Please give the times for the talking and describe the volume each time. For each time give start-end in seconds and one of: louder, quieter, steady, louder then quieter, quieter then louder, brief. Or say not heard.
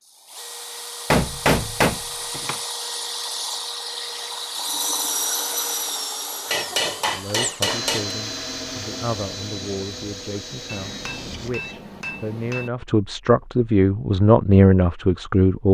7.1-15.6 louder.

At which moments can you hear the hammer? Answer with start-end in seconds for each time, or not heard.
1.1-2.5, 6.5-8.2, 10.7-12.7.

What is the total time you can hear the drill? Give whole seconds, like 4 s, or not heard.
12 s.